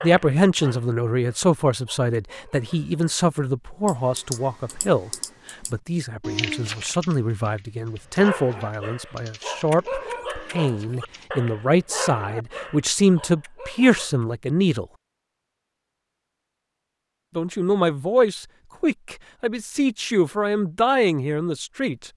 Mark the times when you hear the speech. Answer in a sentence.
You can hear the speech from 0.0 to 14.8 s and from 17.4 to 22.1 s.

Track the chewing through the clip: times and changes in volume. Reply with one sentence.
You can't hear the chewing here.